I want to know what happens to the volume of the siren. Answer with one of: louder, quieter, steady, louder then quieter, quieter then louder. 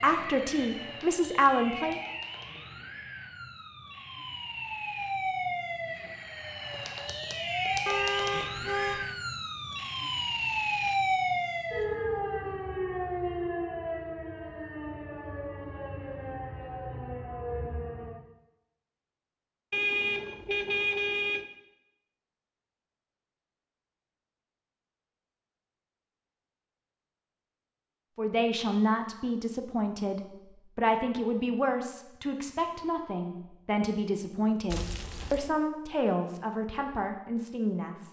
louder then quieter.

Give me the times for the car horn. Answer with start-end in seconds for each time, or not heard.
7.8-9.1, 19.7-21.4, 34.7-35.5.